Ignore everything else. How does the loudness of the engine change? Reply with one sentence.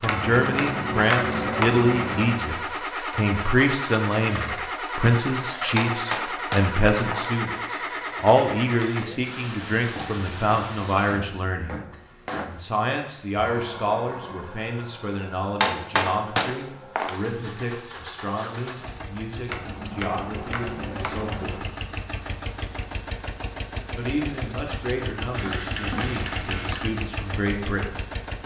The loudness of the engine goes down, then up.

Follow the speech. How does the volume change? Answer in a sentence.
The loudness of the speech goes down.